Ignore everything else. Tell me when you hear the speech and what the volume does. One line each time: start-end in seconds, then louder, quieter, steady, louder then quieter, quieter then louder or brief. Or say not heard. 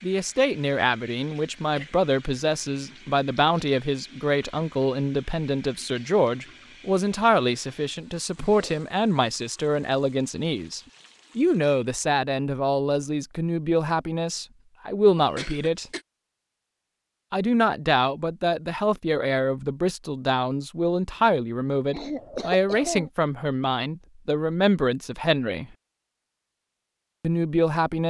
0.0-15.8 steady
17.3-25.6 steady
27.2-28.0 brief.